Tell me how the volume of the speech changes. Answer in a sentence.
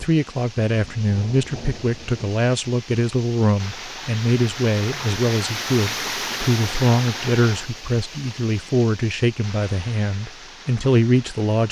The loudness of the speech stays about the same.